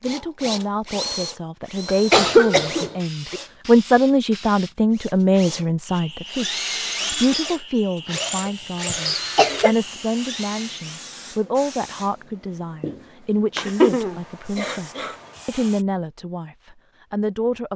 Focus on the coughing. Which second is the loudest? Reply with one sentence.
The loudest moment of the coughing is at 2 seconds.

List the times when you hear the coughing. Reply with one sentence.
The coughing can be heard from 1.9 to 3.4 s, from 8.4 to 9.8 s and from 13.6 to 15.2 s.